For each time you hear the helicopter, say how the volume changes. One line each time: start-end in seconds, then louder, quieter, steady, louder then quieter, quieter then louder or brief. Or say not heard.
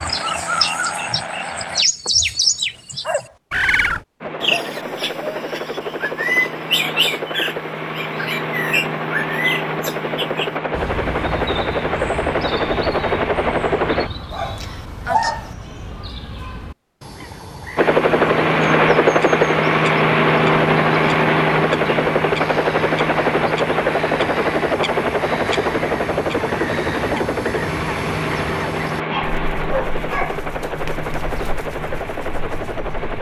0.0-1.9 brief
4.2-14.1 louder
17.8-33.1 quieter.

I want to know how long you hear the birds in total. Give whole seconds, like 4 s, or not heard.
33 s.